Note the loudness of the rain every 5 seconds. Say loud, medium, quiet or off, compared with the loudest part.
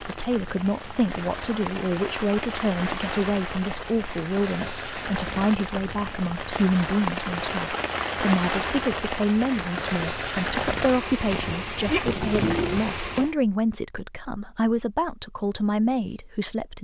medium, loud, loud, off.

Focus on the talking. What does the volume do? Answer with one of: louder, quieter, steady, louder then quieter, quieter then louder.
steady.